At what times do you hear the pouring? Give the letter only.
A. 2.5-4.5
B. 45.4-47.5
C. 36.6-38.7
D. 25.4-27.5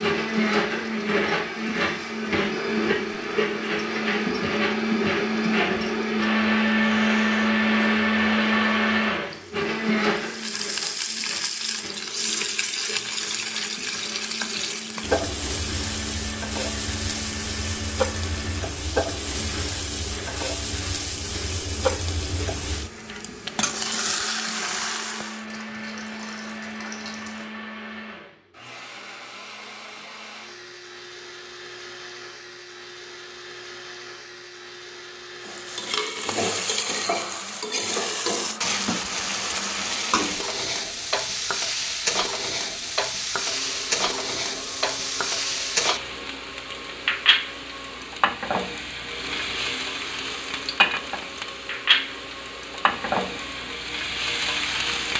D.